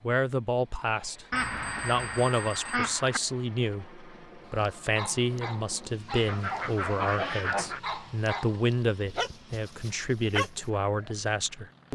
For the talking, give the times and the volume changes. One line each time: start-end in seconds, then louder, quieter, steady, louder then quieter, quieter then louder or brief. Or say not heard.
0.0-11.8 steady.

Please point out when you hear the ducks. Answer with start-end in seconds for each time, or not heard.
1.3-3.2, 6.2-7.8.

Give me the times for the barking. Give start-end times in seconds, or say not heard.
4.5-11.2.